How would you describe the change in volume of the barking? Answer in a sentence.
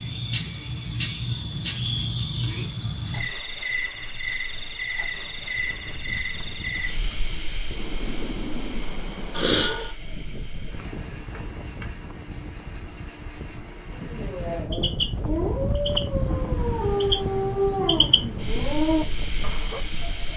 The loudness of the barking goes up.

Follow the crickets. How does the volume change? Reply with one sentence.
The loudness of the crickets goes down, then up.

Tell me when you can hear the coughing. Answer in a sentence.
You can hear the coughing from 9.3 to 9.9 s.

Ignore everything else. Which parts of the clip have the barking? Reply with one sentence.
The barking can be heard from 14.0 to 19.8 s.